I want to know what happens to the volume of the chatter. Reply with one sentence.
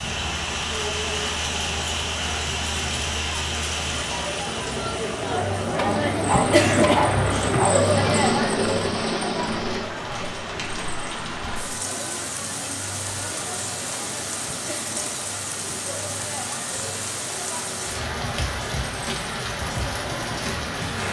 The loudness of the chatter goes up, then down.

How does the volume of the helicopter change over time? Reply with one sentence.
The loudness of the helicopter goes up.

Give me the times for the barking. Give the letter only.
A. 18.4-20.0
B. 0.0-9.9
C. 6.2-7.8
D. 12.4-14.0
C.